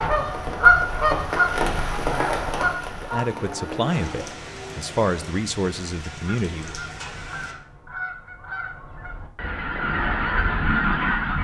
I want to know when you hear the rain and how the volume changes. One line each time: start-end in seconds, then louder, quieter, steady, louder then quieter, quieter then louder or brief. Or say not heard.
0.0-7.5 quieter.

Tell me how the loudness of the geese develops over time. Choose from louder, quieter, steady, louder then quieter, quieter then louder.
quieter then louder.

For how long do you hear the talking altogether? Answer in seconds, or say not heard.
4 s.